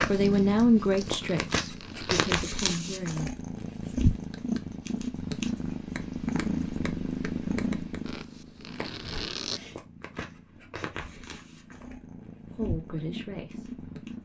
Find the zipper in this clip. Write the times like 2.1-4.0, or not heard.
1.2-2.3, 8.0-9.6.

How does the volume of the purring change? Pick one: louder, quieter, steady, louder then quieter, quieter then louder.
quieter.